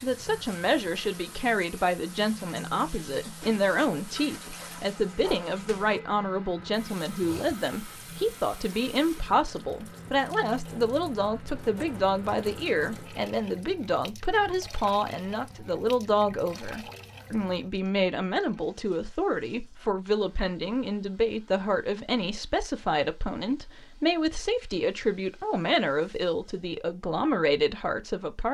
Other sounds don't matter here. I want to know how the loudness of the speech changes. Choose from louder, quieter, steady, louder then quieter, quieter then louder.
steady.